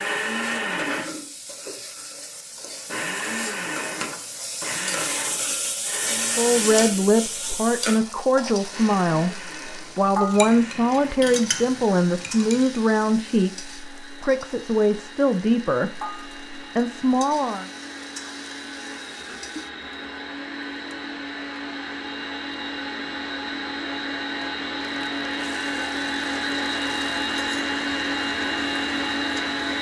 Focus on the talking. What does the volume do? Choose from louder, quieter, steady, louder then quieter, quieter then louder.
steady.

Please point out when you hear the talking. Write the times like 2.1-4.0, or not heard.
6.3-17.7.